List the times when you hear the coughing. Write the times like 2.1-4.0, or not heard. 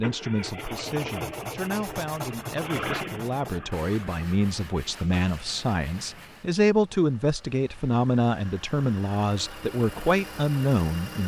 not heard.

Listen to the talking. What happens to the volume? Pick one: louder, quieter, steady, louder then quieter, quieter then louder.
louder.